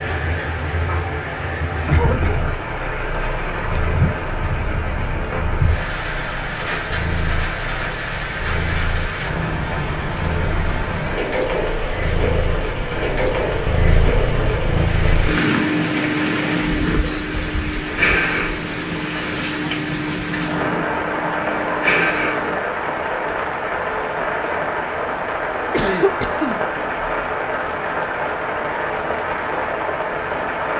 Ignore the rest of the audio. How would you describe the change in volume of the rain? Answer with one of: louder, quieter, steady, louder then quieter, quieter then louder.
steady.